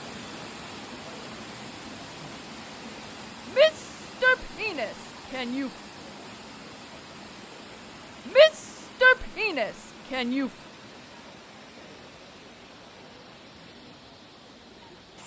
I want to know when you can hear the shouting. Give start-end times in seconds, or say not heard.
3.5-5.7, 8.2-10.5.